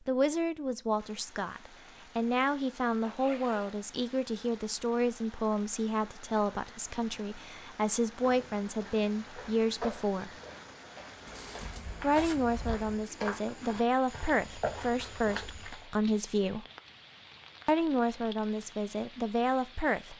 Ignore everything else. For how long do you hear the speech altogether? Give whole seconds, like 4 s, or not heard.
17 s.